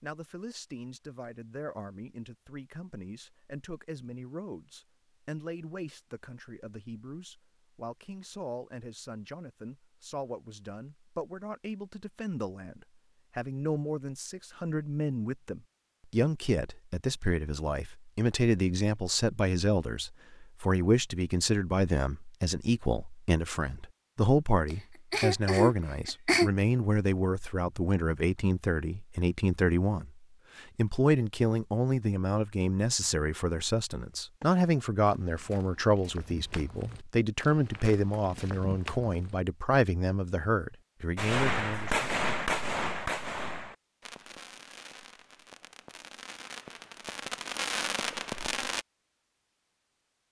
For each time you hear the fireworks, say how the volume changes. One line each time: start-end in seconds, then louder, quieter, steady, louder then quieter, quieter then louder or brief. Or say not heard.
41.1-48.9 quieter then louder.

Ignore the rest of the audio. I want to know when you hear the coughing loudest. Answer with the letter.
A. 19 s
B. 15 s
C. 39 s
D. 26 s
D.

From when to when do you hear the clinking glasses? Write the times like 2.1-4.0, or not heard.
not heard.